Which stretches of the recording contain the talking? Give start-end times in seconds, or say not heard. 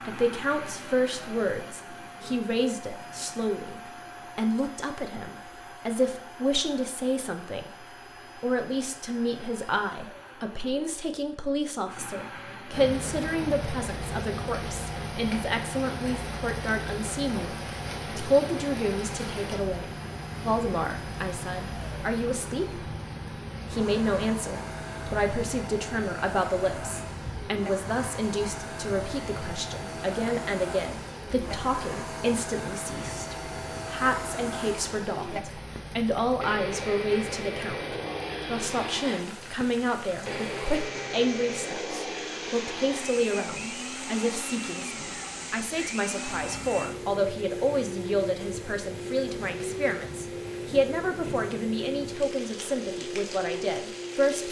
0.1-22.9, 23.7-54.4.